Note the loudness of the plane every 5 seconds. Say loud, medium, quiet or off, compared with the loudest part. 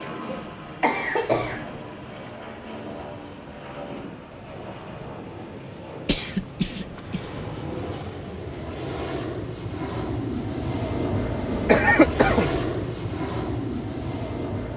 medium, medium, loud.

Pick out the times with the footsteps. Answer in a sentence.
You can't hear the footsteps here.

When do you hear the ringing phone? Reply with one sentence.
The ringing phone can't be heard in this clip.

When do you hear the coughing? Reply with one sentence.
You can hear the coughing from 0.2 to 1.6 s, from 6.0 to 7.2 s and from 11.7 to 12.7 s.